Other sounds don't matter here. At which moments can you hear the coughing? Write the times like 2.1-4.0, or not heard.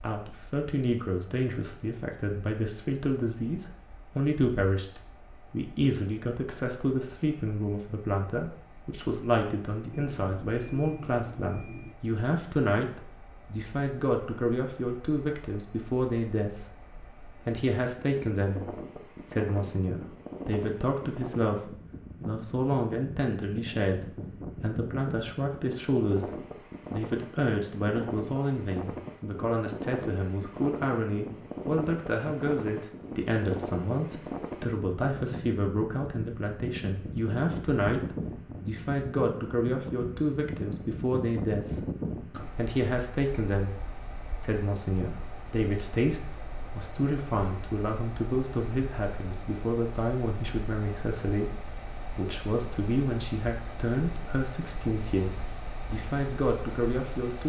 42.0-42.5.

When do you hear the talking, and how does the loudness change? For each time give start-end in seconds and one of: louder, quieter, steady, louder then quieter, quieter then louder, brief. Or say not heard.
0.0-57.4 steady.